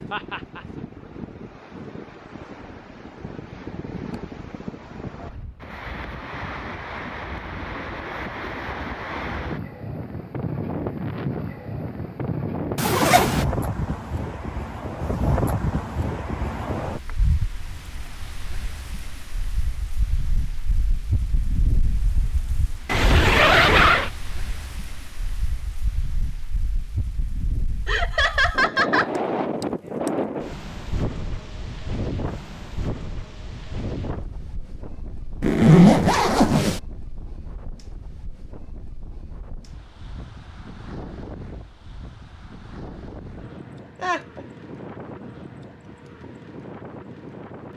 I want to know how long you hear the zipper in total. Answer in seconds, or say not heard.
3 s.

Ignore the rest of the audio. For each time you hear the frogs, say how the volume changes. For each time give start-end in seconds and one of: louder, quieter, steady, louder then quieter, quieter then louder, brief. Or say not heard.
not heard.